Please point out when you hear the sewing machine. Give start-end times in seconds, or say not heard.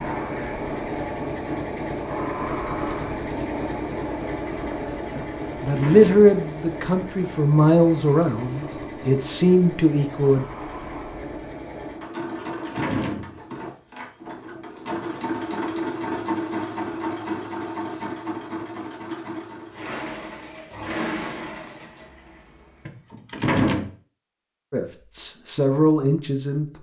0.0-22.6.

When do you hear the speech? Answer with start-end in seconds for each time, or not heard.
5.2-10.4, 24.7-26.6.